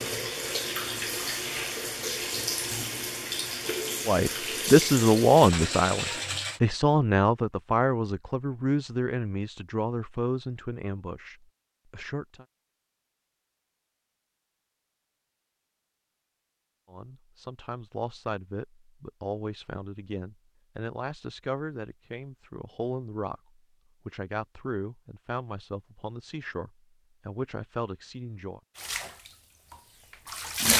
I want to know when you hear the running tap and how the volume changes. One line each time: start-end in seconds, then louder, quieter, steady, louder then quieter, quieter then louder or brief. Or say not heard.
0.0-6.6 steady
28.8-30.7 brief.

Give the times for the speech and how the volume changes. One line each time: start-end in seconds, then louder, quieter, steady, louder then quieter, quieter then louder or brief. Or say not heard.
4.0-12.4 quieter
16.9-28.6 steady.